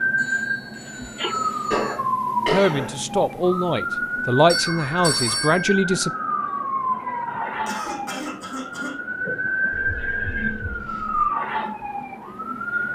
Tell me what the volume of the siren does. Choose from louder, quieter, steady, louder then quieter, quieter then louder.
steady.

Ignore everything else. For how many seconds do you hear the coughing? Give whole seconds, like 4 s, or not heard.
3 s.